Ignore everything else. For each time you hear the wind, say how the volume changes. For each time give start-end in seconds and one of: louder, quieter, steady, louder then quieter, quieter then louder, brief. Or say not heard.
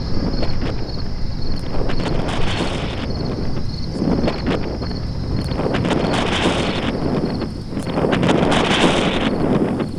0.0-9.9 louder.